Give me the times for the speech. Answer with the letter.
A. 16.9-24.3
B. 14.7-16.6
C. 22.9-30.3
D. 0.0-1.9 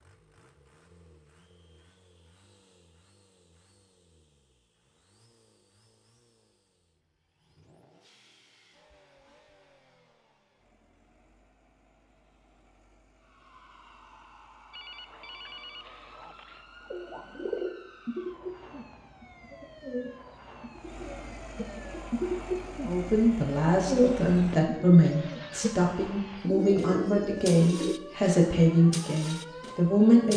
C.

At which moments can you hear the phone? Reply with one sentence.
The phone can be heard from 14.7 to 16.6 s.